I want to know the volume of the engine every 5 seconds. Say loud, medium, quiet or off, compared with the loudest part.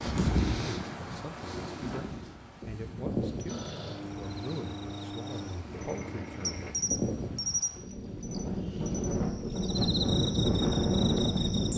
loud, loud, off.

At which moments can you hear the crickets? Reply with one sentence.
You can hear the crickets from 3.2 to 11.7 s.